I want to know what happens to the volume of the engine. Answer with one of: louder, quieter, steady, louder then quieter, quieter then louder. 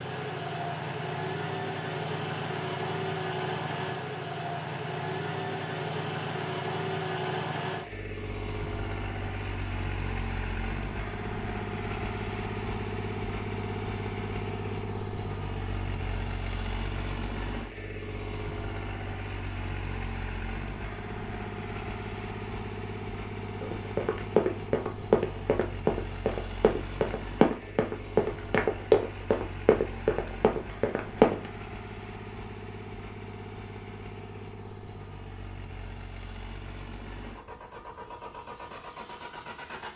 quieter.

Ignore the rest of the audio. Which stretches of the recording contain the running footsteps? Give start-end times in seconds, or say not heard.
23.6-31.5.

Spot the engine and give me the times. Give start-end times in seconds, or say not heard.
0.0-39.9.